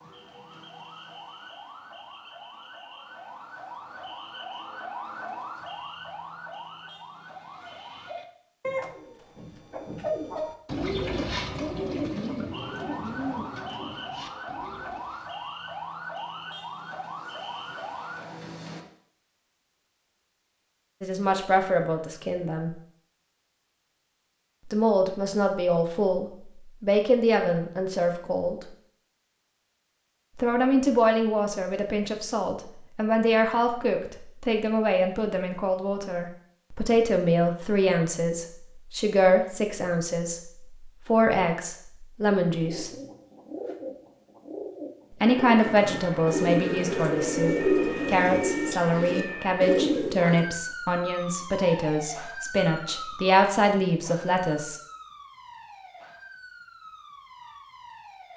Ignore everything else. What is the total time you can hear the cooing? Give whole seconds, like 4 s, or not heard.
16 s.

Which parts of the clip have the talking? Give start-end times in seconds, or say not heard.
21.0-22.7, 24.7-28.6, 30.4-42.9, 45.2-54.8.